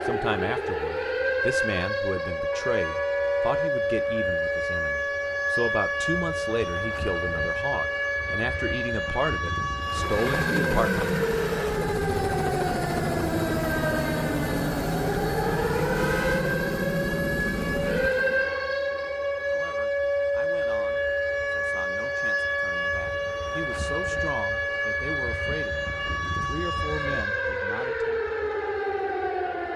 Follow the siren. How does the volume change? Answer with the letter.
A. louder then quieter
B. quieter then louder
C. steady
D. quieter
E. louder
C.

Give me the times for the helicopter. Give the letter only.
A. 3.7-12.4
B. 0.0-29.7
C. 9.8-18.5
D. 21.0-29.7
C.